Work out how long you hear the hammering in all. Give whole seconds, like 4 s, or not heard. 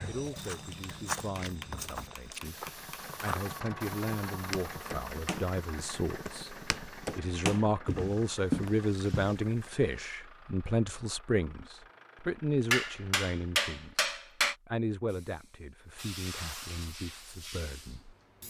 4 s.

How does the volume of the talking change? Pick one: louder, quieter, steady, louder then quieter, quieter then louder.
louder then quieter.